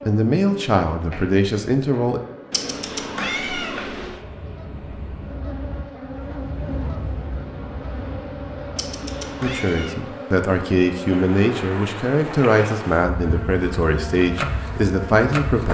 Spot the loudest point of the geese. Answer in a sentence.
The loudest moment of the geese is at 7 seconds.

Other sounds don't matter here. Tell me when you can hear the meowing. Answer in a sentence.
You can hear the meowing from 2.5 to 4.2 s and from 8.8 to 10.1 s.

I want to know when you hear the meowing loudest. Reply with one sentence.
The volume of the meowing peaks at 3 seconds.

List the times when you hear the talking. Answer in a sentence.
The talking can be heard from 0.0 to 2.2 s and from 9.4 to 15.6 s.